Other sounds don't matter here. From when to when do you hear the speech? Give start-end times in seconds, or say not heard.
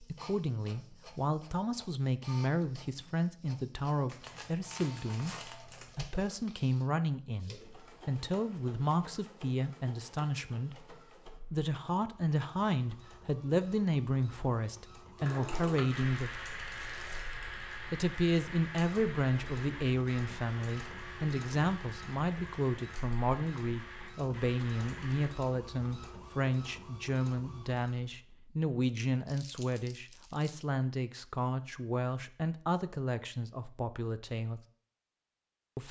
0.0-16.3, 17.9-34.6.